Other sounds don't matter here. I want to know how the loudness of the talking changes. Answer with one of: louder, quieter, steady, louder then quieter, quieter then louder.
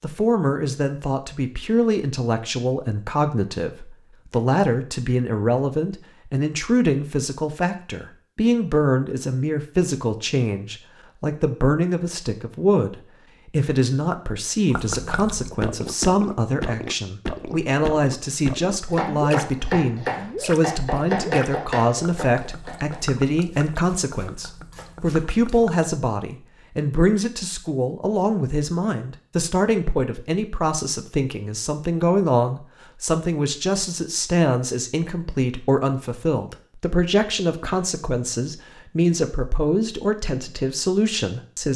steady.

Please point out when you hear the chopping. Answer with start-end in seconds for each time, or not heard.
18.9-25.6.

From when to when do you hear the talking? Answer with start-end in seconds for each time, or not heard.
0.0-41.7.